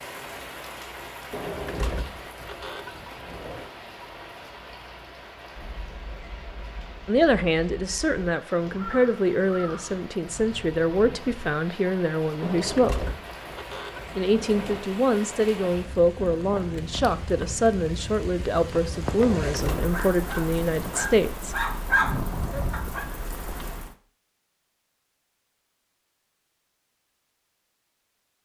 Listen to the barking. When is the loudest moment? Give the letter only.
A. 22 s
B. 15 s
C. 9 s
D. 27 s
A.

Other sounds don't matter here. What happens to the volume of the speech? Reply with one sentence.
The loudness of the speech stays about the same.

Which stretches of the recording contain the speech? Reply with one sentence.
You can hear the speech from 7.0 to 13.1 s and from 14.2 to 21.6 s.